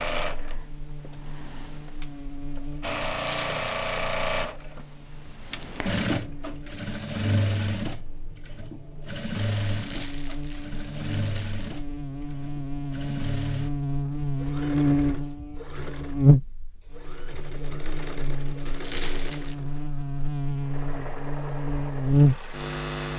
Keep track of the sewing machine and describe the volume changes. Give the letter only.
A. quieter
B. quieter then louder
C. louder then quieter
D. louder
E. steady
A.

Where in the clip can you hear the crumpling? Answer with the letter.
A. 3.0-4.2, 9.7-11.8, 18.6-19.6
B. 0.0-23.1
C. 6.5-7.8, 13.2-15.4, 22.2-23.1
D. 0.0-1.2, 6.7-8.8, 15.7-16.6
A.